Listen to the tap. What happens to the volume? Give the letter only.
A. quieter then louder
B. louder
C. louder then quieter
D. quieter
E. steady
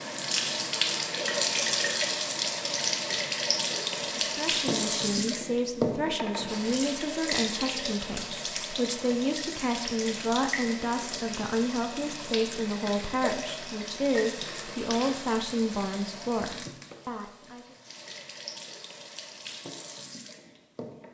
D.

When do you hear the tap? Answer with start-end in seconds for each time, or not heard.
0.0-21.0.